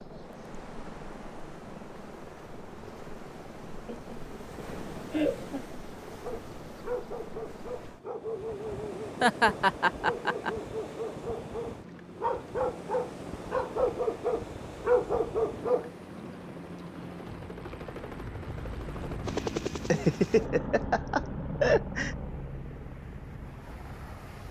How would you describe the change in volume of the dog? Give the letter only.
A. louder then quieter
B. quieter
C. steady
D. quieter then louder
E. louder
E.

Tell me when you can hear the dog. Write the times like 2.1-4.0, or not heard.
6.1-15.9.